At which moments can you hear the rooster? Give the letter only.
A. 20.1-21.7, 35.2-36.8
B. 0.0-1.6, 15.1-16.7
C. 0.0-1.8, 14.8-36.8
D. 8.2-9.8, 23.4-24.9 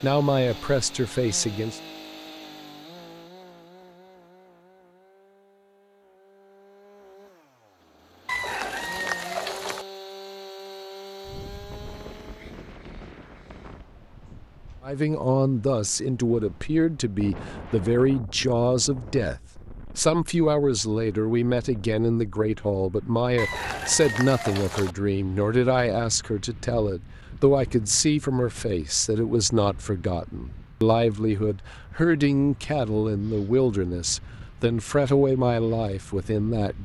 D.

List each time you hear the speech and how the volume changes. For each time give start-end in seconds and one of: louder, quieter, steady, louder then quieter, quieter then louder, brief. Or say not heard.
0.0-1.8 brief
14.8-36.8 steady.